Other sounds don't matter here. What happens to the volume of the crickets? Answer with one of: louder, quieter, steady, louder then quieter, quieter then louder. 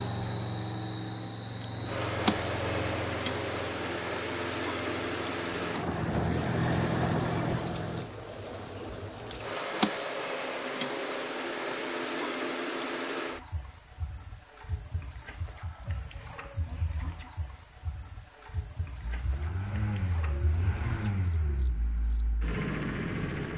steady.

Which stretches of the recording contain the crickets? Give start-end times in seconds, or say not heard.
0.0-23.5.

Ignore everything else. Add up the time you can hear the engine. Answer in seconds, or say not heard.
13 s.